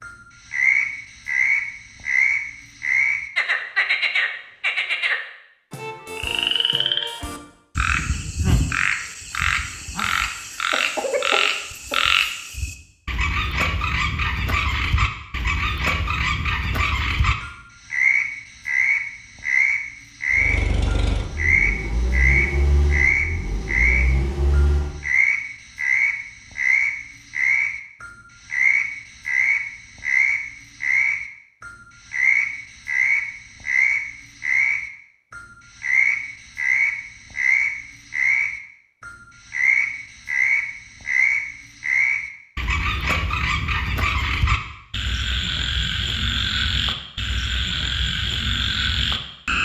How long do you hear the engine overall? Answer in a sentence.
You can hear the engine for 5 seconds altogether.